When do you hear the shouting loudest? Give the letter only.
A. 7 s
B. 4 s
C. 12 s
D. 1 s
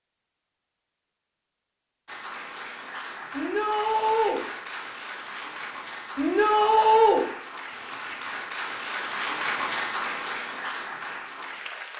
A.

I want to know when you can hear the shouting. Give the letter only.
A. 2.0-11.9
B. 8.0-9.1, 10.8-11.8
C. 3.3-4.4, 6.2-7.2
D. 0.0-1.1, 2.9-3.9
C.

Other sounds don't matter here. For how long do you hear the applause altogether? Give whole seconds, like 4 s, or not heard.
10 s.